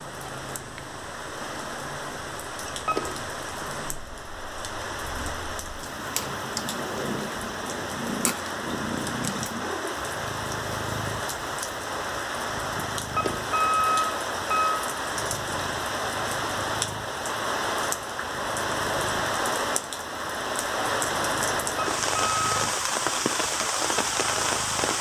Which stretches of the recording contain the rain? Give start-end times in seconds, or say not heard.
0.0-24.9.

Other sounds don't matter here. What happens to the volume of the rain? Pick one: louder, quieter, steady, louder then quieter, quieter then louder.
louder.